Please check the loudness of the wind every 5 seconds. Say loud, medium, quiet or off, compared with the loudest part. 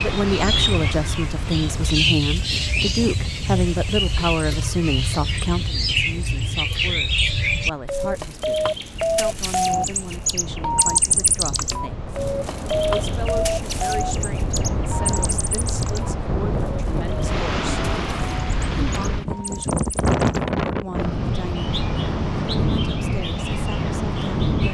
medium, quiet, medium, loud, loud.